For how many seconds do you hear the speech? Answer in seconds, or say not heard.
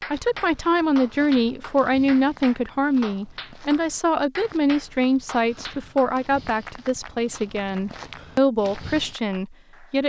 10 s.